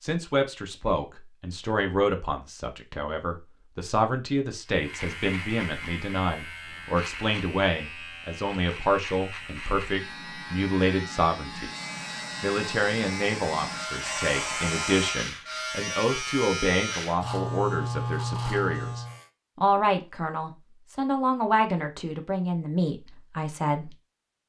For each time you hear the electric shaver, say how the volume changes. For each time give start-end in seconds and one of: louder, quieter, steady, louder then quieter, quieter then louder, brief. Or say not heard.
4.7-19.2 louder.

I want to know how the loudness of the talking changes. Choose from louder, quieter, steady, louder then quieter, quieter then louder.
steady.